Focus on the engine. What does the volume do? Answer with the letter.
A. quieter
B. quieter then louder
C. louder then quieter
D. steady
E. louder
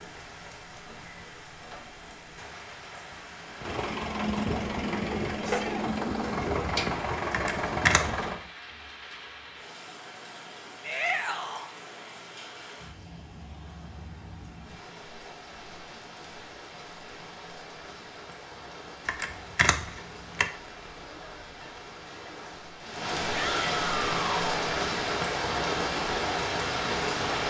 D.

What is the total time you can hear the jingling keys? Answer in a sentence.
The jingling keys can be heard for 2 seconds in total.